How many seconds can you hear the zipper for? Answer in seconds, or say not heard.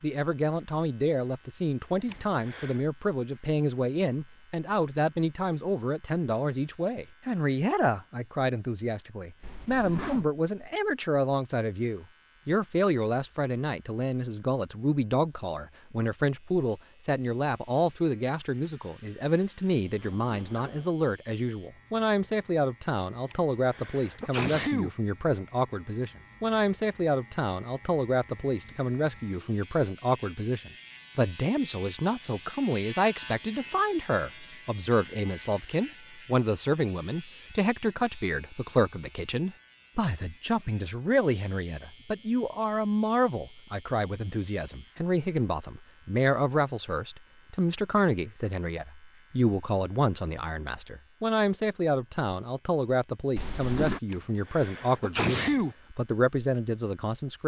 3 s.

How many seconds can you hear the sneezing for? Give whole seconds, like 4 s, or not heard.
4 s.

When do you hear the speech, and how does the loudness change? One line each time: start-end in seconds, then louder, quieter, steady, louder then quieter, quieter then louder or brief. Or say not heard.
0.0-57.4 steady.